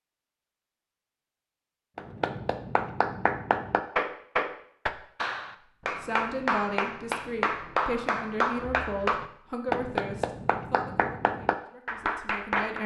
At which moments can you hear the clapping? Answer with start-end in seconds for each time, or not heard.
1.9-12.8.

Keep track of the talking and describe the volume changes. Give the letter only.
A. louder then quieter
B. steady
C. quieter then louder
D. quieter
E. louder
D.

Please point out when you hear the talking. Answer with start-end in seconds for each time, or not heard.
6.0-12.8.